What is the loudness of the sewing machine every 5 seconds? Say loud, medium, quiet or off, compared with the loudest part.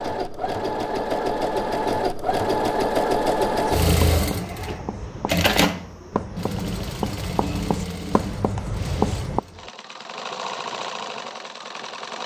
loud, medium, medium.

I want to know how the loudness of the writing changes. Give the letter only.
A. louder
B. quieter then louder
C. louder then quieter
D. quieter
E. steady
A.